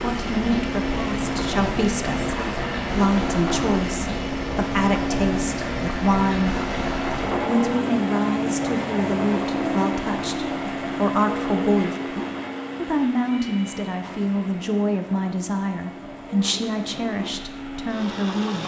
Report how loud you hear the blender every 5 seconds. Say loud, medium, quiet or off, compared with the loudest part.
loud, loud, loud, medium.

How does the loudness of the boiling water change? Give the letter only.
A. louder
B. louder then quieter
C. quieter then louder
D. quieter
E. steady
D.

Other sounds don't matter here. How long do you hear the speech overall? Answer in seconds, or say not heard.
17 s.